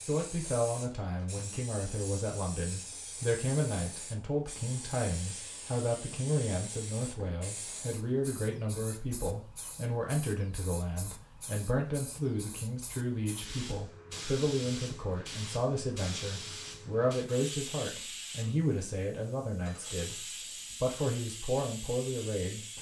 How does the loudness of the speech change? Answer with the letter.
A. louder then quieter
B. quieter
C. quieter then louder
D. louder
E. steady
E.